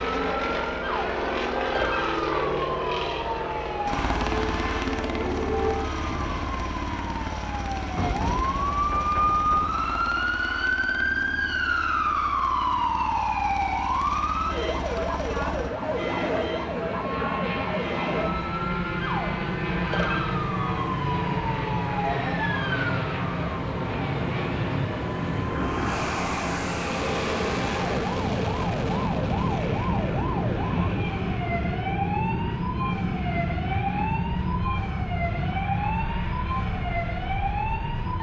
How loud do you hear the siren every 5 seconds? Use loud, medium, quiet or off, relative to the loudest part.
medium, loud, loud, medium, medium, medium, medium, medium.